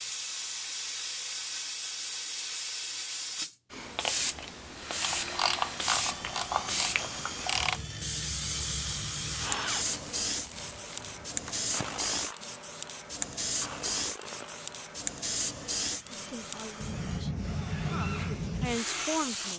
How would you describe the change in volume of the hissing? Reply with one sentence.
The volume of the hissing stays about the same.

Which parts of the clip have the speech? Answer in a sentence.
The speech can be heard from 16.1 to 19.5 s.